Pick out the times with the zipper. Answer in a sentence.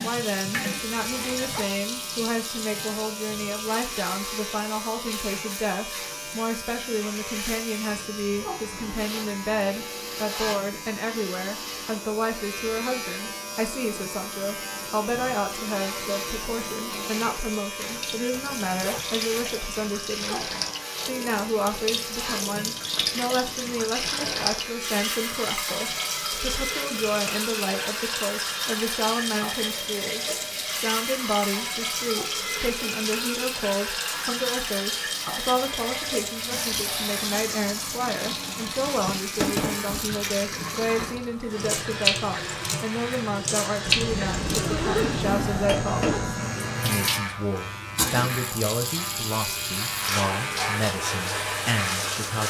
The zipper can be heard from 1.0 to 1.8 s, from 18.3 to 19.8 s and from 43.9 to 46.4 s.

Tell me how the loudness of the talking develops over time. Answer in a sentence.
The volume of the talking stays about the same.